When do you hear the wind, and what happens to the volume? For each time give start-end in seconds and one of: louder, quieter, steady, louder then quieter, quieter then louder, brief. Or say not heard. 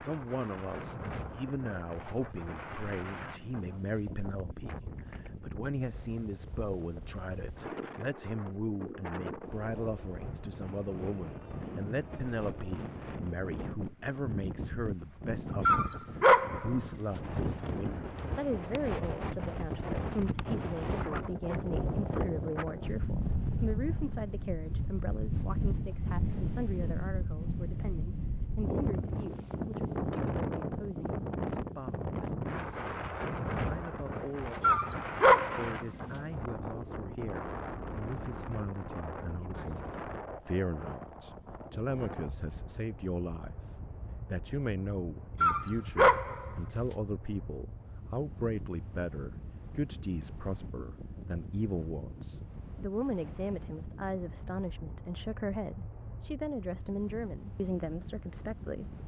0.0-59.0 louder then quieter.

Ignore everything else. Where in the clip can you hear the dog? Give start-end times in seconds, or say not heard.
15.7-17.2, 34.6-36.2, 45.4-47.0.